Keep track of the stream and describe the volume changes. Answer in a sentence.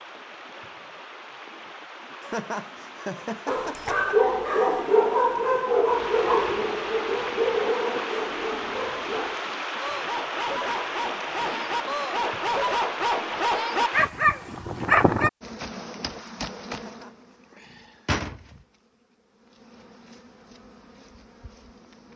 The loudness of the stream goes up.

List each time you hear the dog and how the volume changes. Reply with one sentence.
You can hear the dog from 3.5 to 15.3 s, getting quieter then louder.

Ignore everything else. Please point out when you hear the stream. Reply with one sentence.
The stream can be heard from 0.0 to 14.1 s.